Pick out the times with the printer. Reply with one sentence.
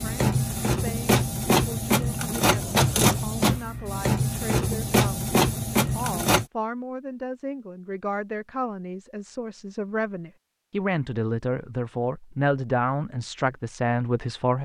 The printer can be heard from 0.0 to 6.5 s.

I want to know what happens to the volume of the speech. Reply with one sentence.
The volume of the speech goes up.